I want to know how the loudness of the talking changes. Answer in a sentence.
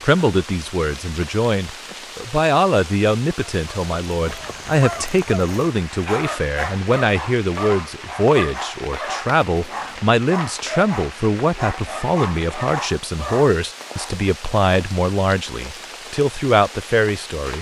The loudness of the talking stays about the same.